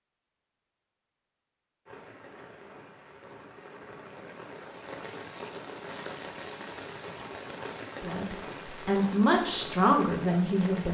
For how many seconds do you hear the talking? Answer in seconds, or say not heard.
3 s.